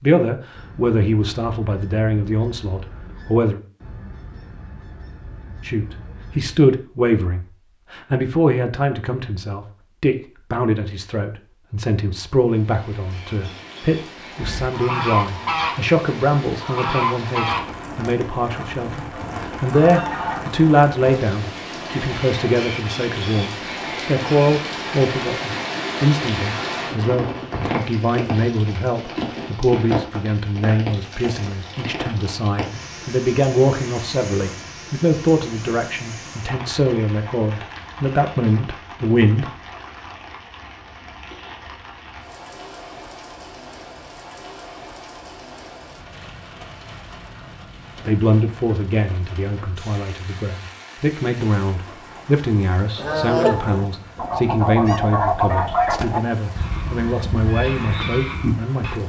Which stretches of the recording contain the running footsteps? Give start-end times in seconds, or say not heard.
not heard.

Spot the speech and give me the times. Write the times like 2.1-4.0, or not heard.
0.0-3.6, 5.7-39.5, 48.0-59.0.